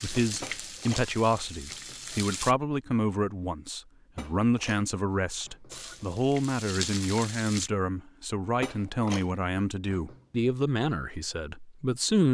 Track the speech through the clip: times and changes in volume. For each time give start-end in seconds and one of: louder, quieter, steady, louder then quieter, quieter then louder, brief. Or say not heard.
0.0-12.3 steady.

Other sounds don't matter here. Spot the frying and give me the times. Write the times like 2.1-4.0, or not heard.
0.0-2.5, 5.7-7.7.